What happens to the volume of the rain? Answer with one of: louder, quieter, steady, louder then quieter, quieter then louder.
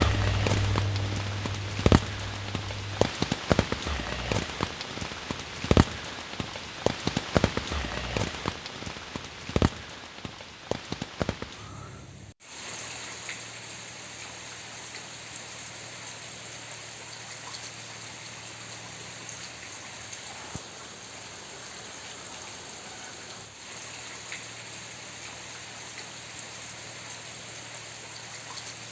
quieter.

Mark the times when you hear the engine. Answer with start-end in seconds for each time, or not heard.
0.0-3.1.